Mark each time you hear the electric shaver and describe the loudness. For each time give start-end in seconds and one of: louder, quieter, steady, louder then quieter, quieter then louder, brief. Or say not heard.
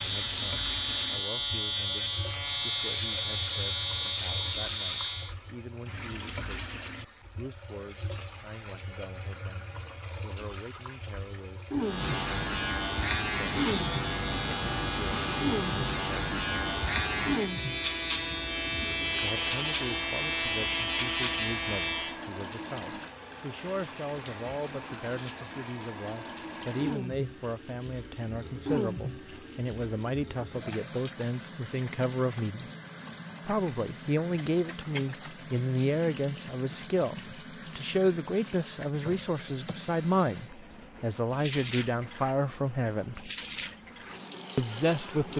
0.0-5.3 steady
11.8-22.2 steady.